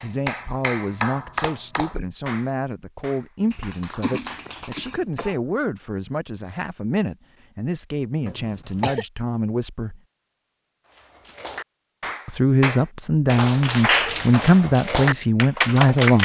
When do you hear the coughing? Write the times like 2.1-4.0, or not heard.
3.4-5.4, 8.2-9.1.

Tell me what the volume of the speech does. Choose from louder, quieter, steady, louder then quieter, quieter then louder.
louder.